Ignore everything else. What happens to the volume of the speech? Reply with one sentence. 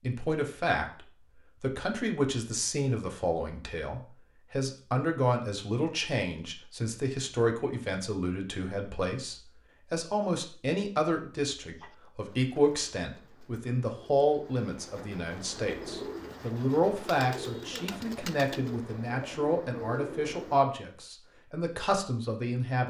The volume of the speech stays about the same.